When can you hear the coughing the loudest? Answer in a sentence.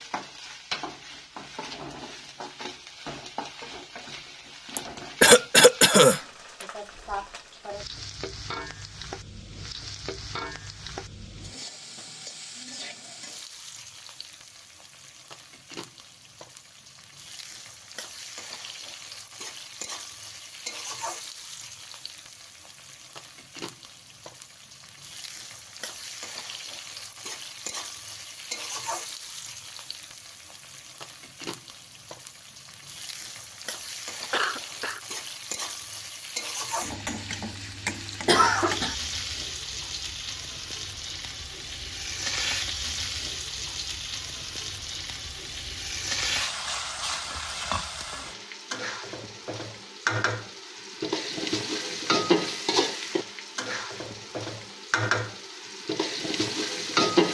The volume of the coughing peaks at 5 seconds.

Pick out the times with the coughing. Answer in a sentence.
You can hear the coughing from 4.8 to 6.2 s, from 34.3 to 35.0 s and from 38.2 to 39.0 s.